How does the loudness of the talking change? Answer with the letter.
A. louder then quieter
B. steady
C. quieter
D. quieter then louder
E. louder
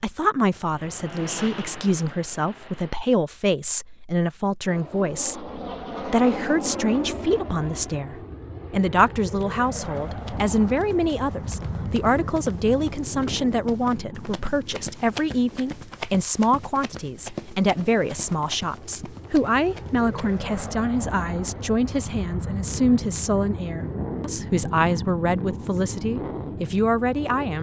B.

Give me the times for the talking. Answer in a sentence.
You can hear the talking from 0.0 to 27.5 s.